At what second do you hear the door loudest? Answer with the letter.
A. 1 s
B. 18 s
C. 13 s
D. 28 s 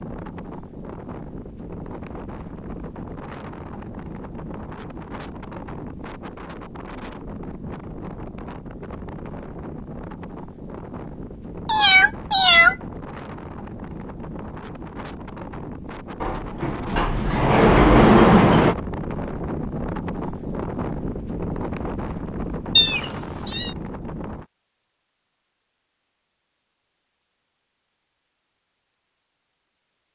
B.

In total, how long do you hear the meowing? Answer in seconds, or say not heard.
2 s.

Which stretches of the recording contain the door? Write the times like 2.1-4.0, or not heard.
16.2-18.8.